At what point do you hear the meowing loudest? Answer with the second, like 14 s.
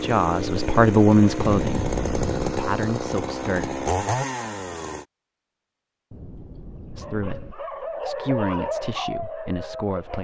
2 s.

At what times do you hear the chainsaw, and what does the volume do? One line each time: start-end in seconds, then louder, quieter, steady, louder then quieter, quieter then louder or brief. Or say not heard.
0.0-5.0 steady.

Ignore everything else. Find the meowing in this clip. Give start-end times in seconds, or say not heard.
1.4-2.6, 6.1-7.5.